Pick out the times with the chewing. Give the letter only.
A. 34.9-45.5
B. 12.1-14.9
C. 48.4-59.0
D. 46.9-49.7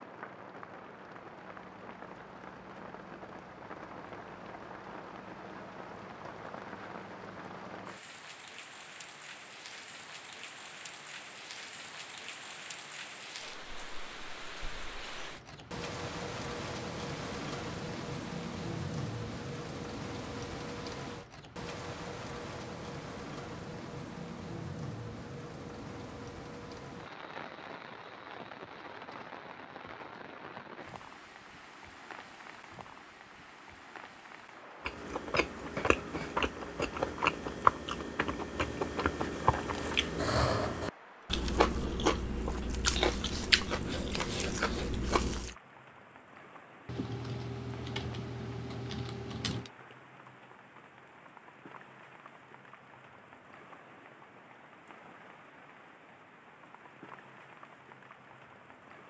A.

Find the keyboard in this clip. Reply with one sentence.
The keyboard can be heard from 46.9 to 49.7 s.